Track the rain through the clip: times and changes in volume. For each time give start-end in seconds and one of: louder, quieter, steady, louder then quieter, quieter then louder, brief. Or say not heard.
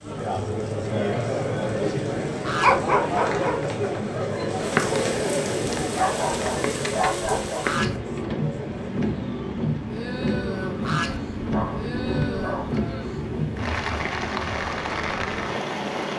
0.0-16.1 louder.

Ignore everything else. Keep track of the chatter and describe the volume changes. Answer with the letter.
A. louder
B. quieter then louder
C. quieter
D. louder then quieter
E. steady
C.